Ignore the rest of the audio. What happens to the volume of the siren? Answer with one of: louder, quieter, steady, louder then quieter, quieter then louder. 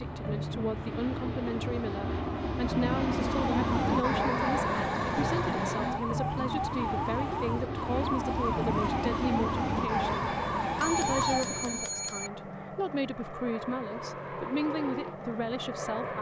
steady.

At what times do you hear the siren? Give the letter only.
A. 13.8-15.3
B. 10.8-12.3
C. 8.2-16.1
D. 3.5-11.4
D.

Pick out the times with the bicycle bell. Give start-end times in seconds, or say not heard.
10.8-12.3.